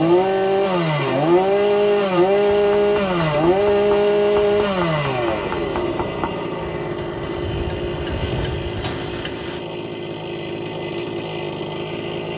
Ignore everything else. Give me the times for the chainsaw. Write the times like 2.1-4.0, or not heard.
0.0-12.3.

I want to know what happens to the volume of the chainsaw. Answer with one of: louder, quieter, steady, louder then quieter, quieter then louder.
quieter.